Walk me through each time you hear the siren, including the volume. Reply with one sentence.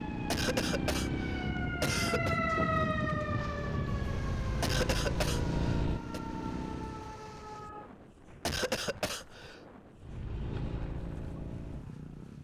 The siren can be heard from 0.0 to 7.9 s, getting louder then quieter.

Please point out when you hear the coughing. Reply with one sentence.
The coughing can be heard from 0.3 to 2.4 s, from 4.6 to 6.2 s and from 8.4 to 9.6 s.